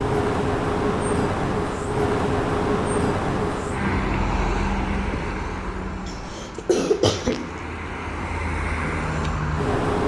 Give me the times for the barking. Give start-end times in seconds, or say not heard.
not heard.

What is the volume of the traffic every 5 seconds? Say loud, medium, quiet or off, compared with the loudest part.
loud, medium.